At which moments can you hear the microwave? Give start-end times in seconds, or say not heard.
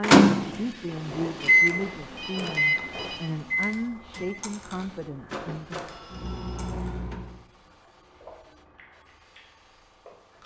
0.0-7.4.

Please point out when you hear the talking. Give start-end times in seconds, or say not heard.
0.0-5.8.